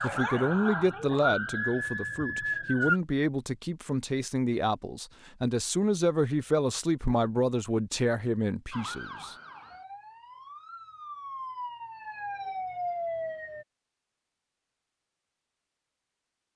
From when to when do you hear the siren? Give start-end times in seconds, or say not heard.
0.0-3.0, 8.7-13.7.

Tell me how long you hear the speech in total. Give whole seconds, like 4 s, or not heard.
9 s.